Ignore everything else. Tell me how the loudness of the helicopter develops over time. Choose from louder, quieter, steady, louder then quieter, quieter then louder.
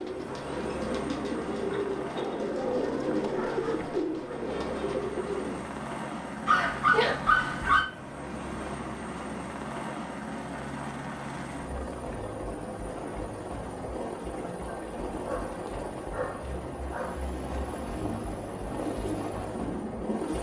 steady.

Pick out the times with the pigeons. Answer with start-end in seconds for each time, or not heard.
0.0-5.7, 17.9-20.3.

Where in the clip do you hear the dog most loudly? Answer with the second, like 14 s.
7 s.